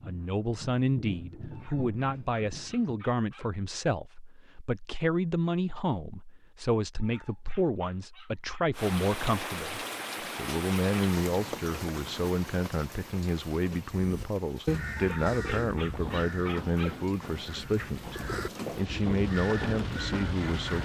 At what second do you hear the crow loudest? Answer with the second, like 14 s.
15 s.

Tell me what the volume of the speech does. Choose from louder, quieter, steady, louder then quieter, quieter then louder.
steady.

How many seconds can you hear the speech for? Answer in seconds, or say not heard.
21 s.